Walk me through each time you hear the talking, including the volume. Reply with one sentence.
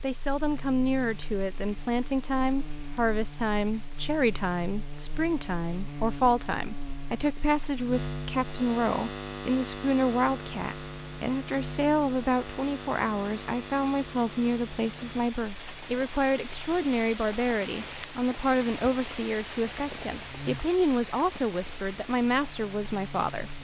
You can hear the talking from 0.0 to 23.5 s, at a steady volume.